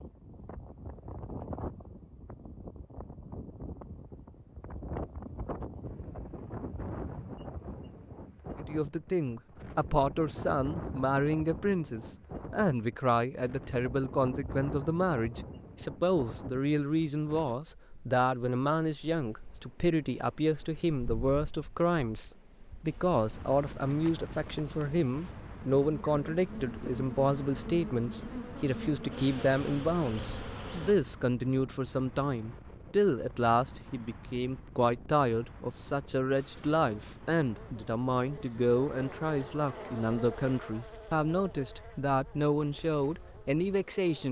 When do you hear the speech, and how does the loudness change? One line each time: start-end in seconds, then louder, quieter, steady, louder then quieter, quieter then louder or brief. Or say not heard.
8.7-44.2 steady.